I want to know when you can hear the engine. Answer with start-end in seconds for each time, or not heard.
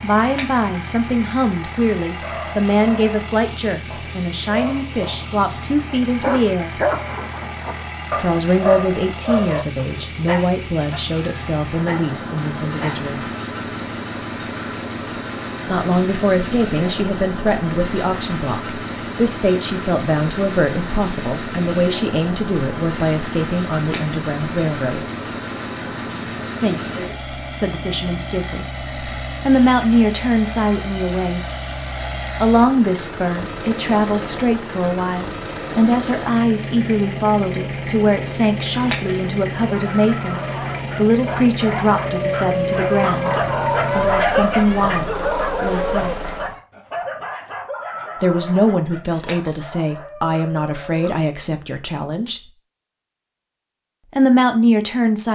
0.0-46.5.